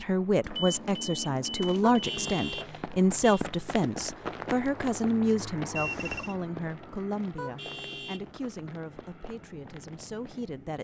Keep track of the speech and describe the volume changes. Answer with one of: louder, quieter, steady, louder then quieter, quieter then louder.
quieter.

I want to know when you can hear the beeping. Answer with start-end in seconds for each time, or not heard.
0.4-2.4, 5.8-6.3.